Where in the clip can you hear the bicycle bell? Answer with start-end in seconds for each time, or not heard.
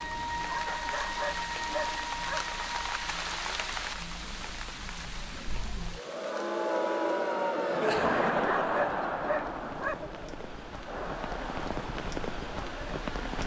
not heard.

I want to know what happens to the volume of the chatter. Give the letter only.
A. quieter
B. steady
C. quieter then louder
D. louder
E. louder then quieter
E.